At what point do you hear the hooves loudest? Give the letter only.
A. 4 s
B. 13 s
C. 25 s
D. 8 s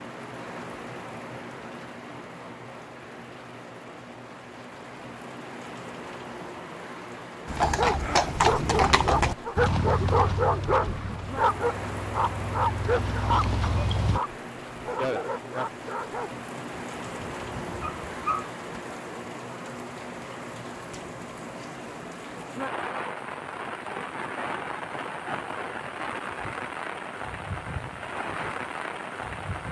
D.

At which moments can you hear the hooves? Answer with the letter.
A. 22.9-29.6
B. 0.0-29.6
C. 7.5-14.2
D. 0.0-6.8
C.